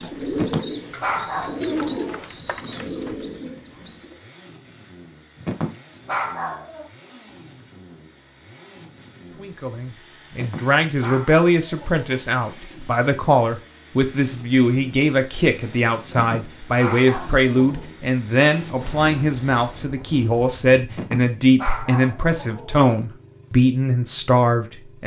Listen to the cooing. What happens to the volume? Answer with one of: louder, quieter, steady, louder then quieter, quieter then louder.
quieter.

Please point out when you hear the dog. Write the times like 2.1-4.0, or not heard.
0.3-2.2, 5.4-6.8, 10.3-12.2, 16.1-17.9, 20.9-22.9.